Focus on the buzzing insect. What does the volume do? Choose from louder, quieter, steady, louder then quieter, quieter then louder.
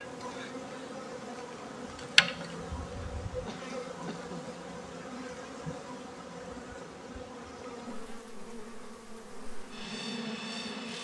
quieter.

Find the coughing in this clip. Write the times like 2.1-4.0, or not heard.
3.5-4.6.